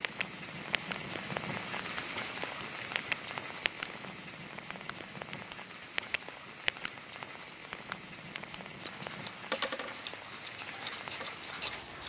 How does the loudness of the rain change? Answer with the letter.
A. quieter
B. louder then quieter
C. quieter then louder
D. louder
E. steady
A.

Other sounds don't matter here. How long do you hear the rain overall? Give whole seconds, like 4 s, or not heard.
12 s.